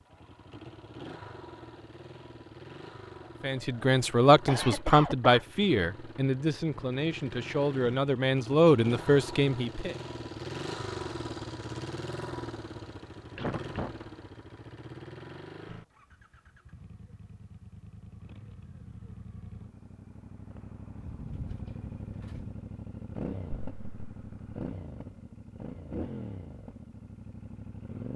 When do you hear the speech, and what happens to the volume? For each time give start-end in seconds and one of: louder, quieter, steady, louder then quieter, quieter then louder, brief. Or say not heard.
3.4-9.9 quieter then louder.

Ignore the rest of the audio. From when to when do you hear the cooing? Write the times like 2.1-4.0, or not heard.
21.0-22.6.